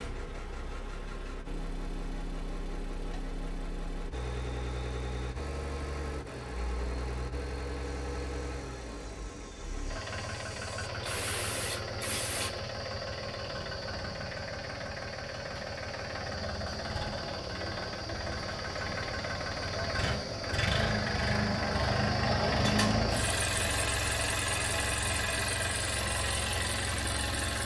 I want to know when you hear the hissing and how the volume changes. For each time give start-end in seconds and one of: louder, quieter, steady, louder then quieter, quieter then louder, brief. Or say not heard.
7.8-12.6 louder.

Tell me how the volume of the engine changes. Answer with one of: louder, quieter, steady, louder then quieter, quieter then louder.
louder.